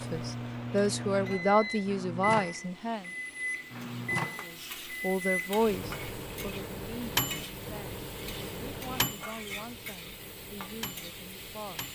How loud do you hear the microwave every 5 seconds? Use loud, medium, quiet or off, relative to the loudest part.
loud, loud, medium.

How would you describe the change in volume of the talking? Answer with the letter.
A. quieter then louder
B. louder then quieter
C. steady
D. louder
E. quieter
E.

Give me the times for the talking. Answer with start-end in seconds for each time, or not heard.
0.0-3.0, 4.5-11.9.